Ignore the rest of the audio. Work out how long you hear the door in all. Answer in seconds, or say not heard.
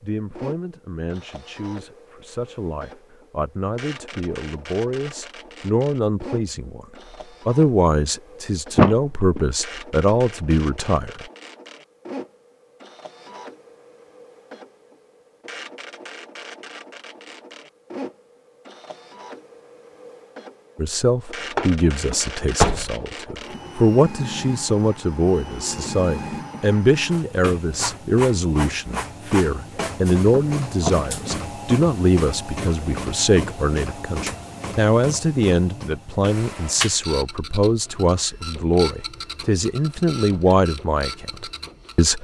3 s.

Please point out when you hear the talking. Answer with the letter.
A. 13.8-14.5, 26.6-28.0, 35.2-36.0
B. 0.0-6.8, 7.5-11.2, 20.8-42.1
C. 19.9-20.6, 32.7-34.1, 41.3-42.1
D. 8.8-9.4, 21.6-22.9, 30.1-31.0
B.